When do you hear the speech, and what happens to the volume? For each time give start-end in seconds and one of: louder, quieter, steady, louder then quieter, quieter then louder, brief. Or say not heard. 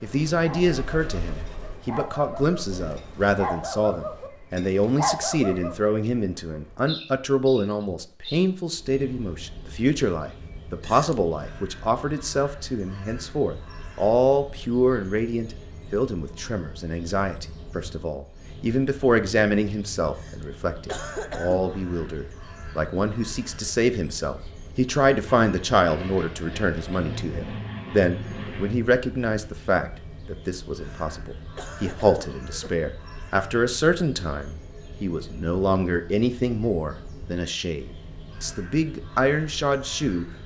0.0-40.2 steady.